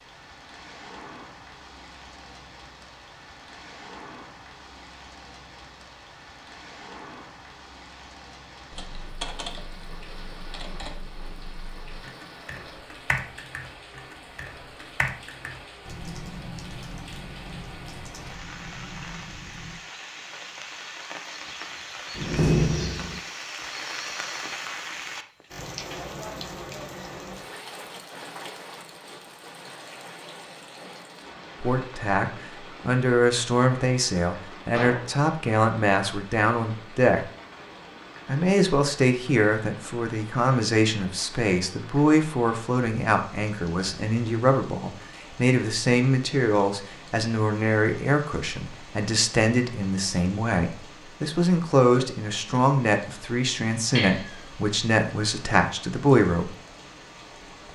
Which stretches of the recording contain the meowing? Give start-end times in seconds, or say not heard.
54.0-54.4.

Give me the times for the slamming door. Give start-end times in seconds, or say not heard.
22.1-23.2, 34.7-35.1.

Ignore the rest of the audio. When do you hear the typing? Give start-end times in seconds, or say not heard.
8.7-19.8.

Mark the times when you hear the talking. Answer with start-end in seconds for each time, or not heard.
31.6-37.2, 38.2-56.5.